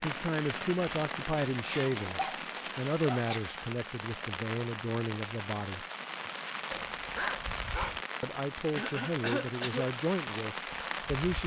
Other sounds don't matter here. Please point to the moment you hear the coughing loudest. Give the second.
9 s.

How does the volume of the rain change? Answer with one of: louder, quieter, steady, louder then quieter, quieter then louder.
steady.